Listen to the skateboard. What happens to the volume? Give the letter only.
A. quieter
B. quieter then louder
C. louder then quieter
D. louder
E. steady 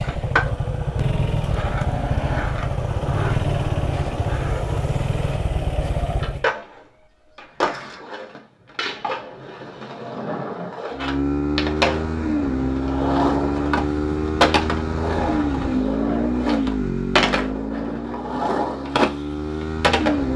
D.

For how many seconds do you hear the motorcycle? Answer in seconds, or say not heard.
16 s.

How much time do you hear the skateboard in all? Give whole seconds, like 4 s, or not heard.
20 s.